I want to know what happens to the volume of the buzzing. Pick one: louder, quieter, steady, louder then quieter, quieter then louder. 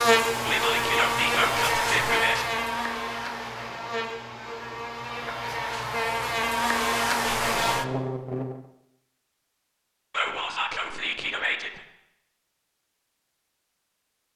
quieter then louder.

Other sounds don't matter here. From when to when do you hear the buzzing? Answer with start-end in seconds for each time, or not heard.
0.0-8.6.